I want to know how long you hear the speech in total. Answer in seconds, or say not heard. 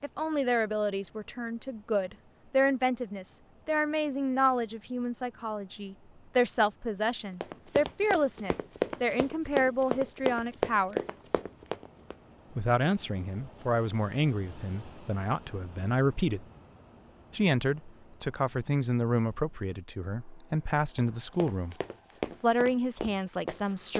21 s.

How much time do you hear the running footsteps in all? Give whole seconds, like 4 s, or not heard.
8 s.